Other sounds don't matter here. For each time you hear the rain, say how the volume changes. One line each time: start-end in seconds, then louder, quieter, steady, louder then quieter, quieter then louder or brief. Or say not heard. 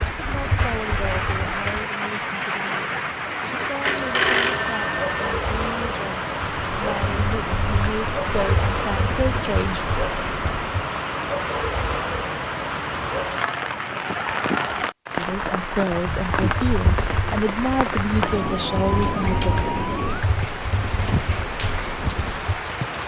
0.0-23.0 steady.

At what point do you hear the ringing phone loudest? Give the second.
4 s.